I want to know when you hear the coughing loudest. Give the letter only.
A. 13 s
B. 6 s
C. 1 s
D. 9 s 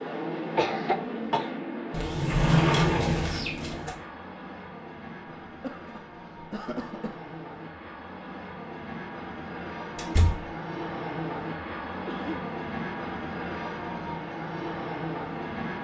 C.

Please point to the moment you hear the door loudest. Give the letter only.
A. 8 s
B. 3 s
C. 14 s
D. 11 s
B.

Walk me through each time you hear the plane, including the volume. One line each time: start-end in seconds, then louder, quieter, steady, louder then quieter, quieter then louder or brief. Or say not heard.
0.0-15.7 quieter then louder.